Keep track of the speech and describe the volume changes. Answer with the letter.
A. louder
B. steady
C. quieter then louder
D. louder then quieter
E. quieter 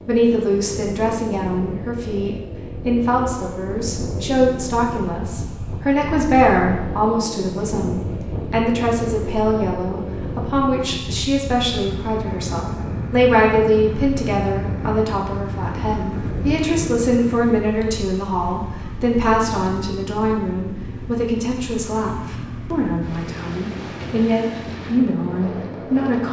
B.